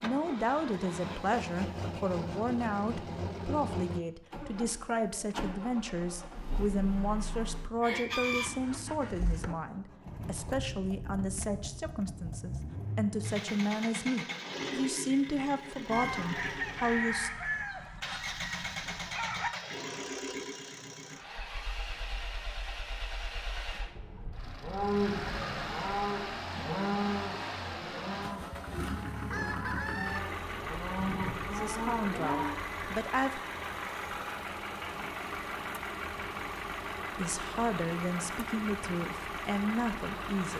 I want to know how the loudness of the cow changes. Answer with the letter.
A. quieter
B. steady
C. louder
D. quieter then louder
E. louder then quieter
D.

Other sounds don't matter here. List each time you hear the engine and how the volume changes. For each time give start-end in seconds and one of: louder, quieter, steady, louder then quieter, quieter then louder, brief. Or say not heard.
0.0-40.5 steady.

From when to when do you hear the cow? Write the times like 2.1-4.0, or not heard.
23.9-32.5.